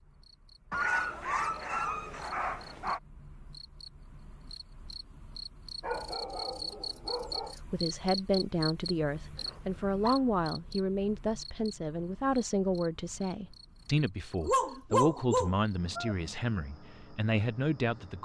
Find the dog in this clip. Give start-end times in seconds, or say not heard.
0.7-3.0, 5.8-7.5, 9.3-10.2, 14.4-16.1.